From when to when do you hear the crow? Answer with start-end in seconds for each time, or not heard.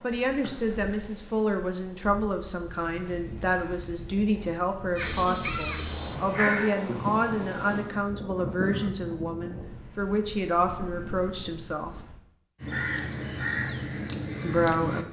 5.0-8.9, 12.6-15.0.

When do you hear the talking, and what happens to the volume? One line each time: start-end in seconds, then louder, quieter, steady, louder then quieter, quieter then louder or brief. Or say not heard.
0.0-12.0 steady
14.4-15.0 brief.